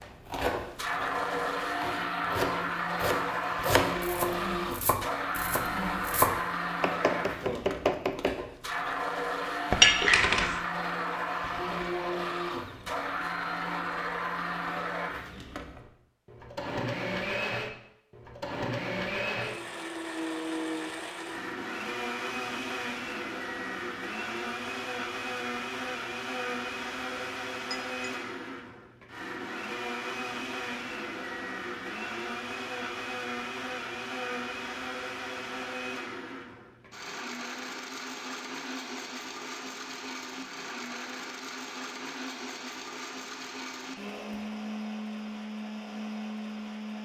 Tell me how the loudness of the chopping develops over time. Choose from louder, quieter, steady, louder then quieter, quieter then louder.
louder.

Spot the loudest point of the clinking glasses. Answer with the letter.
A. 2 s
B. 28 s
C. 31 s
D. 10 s
D.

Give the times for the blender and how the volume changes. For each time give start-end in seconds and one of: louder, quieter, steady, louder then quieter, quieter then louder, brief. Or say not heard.
0.0-47.0 quieter.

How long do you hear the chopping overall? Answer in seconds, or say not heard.
8 s.